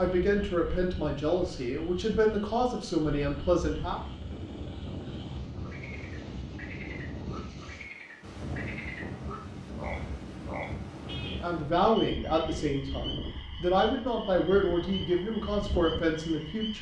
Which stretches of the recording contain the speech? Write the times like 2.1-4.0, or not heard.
0.0-4.0, 11.2-16.7.